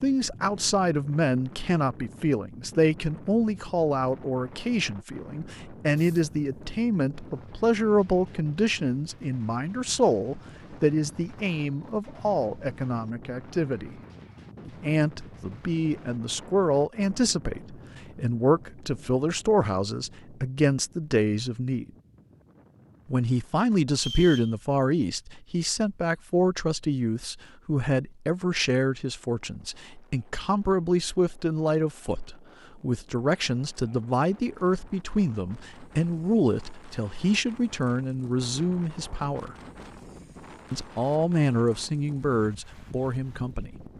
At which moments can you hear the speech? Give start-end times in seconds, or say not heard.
0.0-13.9, 14.7-21.9, 23.1-39.5, 40.7-43.8.